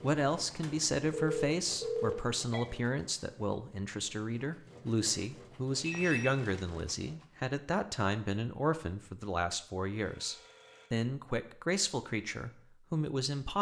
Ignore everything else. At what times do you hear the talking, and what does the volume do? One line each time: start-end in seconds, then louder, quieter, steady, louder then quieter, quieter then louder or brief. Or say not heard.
0.0-13.5 steady.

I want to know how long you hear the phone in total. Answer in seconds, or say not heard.
4 s.